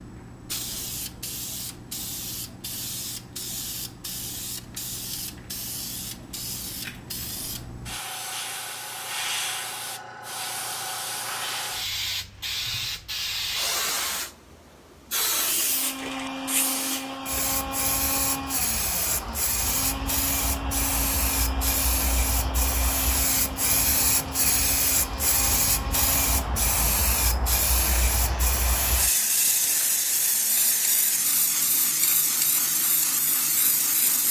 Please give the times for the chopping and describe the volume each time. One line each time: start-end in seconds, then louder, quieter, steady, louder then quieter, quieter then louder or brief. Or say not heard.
not heard.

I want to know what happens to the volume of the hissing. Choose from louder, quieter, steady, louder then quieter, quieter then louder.
louder.